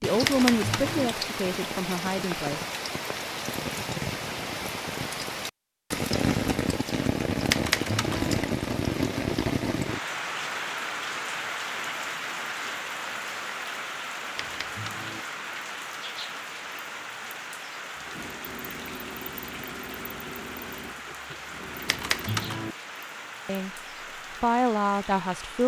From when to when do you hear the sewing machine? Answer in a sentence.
The sewing machine can be heard from 17.9 to 22.5 s.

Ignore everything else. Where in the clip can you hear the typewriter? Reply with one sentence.
You can hear the typewriter from 0.2 to 1.1 s, from 7.5 to 8.3 s, from 14.3 to 15.2 s and from 21.9 to 22.8 s.